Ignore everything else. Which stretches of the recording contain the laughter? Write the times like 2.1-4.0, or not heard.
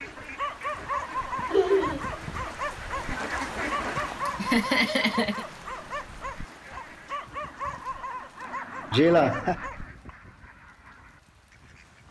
1.5-2.0, 4.2-5.5, 8.9-9.6.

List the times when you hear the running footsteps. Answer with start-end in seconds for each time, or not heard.
not heard.